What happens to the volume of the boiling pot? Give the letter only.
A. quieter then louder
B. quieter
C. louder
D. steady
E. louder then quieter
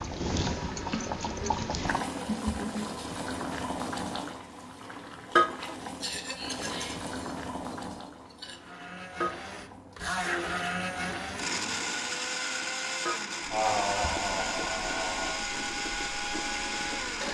B.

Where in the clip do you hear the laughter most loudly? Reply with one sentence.
The loudest moment of the laughter is at 14 seconds.